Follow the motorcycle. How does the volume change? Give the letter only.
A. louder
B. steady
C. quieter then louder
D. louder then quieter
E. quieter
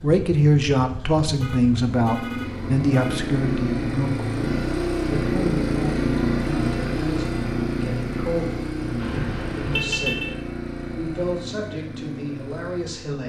D.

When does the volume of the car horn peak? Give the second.
10 s.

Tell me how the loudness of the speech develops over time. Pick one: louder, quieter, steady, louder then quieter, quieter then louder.
quieter.